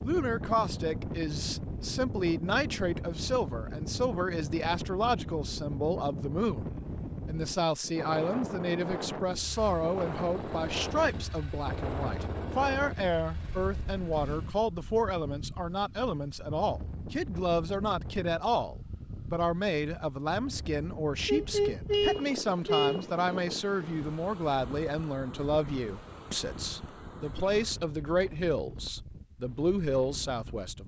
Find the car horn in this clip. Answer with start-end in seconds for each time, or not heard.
21.2-23.0.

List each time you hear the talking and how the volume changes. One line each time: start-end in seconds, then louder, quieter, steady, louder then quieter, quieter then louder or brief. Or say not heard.
0.0-30.8 steady.